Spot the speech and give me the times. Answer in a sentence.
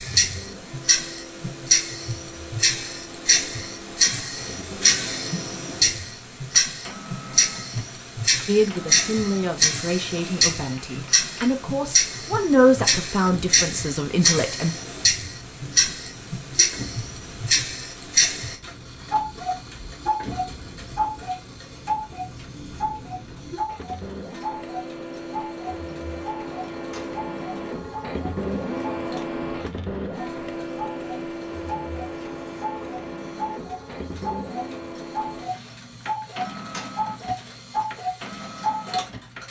The speech can be heard from 8.4 to 14.8 s.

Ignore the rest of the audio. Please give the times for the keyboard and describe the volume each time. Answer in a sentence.
You can't hear the keyboard here.